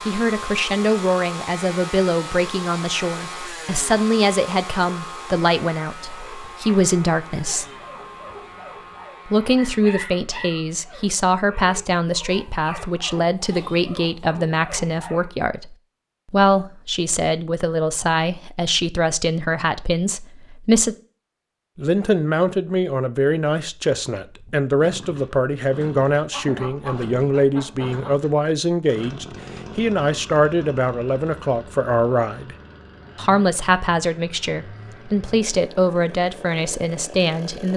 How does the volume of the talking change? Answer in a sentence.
The loudness of the talking stays about the same.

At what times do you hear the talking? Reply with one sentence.
The talking can be heard from 0.1 to 7.7 s, from 9.2 to 20.9 s, from 21.8 to 32.5 s and from 33.1 to 37.7 s.